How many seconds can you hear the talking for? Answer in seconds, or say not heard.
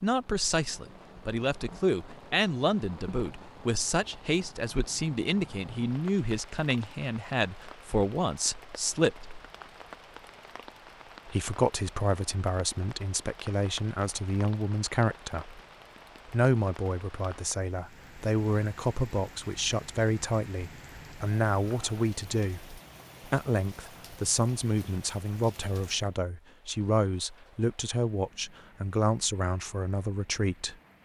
28 s.